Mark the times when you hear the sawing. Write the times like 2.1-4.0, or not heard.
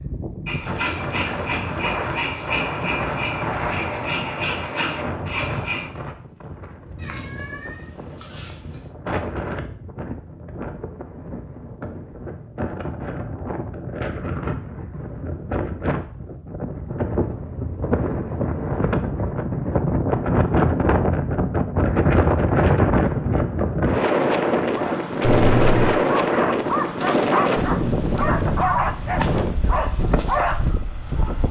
0.5-5.9.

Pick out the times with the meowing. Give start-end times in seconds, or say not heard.
7.0-8.8, 25.2-25.9.